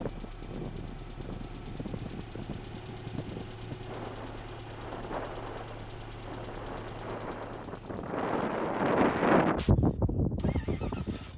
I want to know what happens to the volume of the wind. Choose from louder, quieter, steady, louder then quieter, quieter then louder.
louder.